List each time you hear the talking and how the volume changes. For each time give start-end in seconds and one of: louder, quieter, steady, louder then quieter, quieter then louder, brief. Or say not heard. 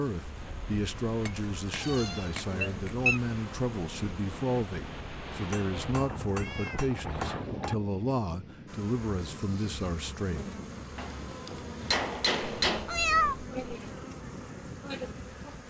0.0-10.5 steady.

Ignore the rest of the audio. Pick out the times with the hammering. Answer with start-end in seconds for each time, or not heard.
1.2-2.9, 5.3-7.8, 10.9-12.9.